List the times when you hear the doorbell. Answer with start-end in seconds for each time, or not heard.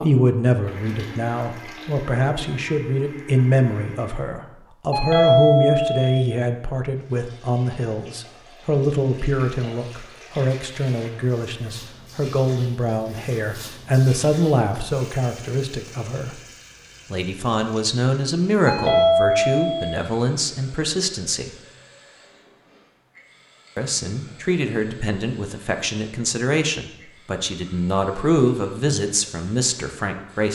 4.9-6.2, 18.6-20.0.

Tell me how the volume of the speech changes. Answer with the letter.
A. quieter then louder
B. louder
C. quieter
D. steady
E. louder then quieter
D.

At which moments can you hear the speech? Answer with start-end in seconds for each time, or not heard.
0.0-16.4, 17.1-21.6, 23.8-30.4.